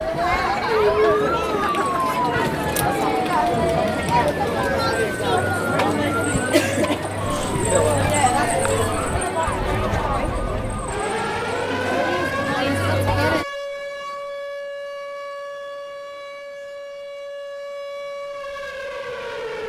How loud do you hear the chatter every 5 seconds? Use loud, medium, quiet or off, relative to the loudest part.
loud, loud, loud, off.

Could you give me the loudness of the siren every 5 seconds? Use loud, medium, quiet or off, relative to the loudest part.
loud, loud, loud, medium.